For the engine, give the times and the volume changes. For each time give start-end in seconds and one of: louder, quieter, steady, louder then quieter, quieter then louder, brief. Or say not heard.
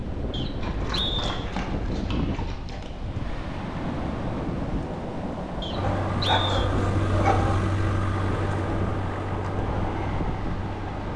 5.8-11.1 quieter.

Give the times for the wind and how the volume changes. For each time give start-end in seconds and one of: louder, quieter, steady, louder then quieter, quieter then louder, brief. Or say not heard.
0.0-11.1 steady.